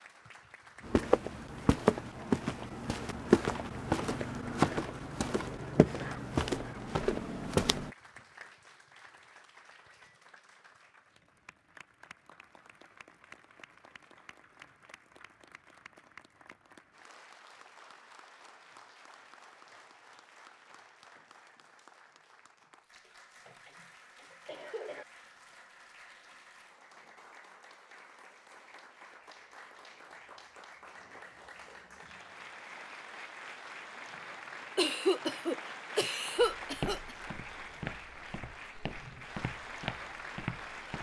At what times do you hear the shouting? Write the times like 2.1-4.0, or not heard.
not heard.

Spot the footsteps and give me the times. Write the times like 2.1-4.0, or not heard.
0.8-7.9, 36.4-40.9.